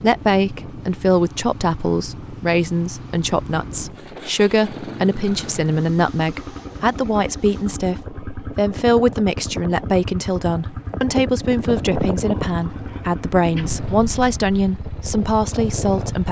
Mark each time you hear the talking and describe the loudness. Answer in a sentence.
You can hear the talking from 0.0 to 16.2 s, at a steady volume.